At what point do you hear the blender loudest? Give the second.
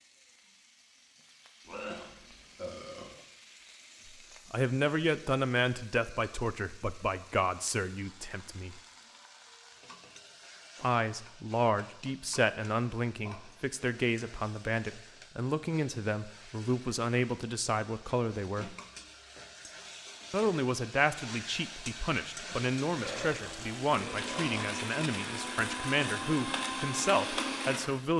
27 s.